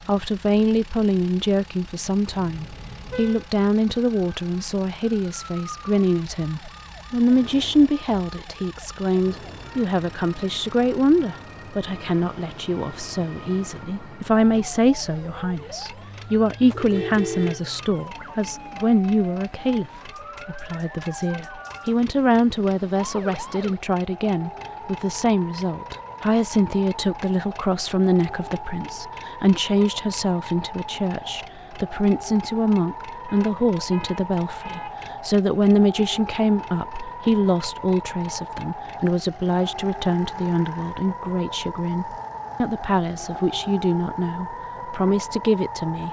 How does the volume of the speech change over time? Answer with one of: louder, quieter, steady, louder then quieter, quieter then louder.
steady.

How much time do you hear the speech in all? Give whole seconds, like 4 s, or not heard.
46 s.